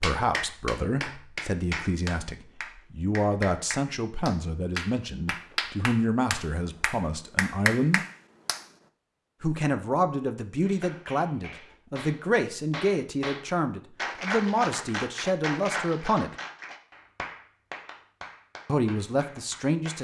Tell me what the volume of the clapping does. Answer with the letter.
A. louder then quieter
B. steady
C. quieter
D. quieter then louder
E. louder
C.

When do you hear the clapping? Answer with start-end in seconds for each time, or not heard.
0.0-8.7, 10.6-19.9.